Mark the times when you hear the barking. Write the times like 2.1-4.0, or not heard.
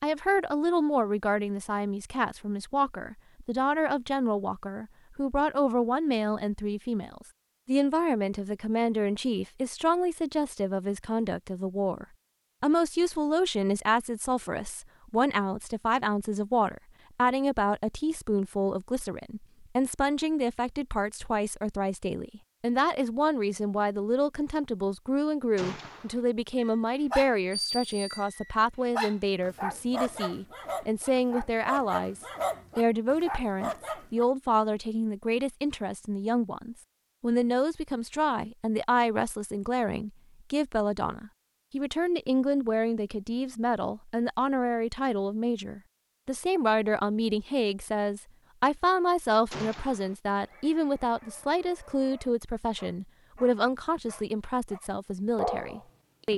26.6-34.2, 50.4-56.3.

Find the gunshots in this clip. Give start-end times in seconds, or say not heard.
25.6-26.2, 49.5-50.1.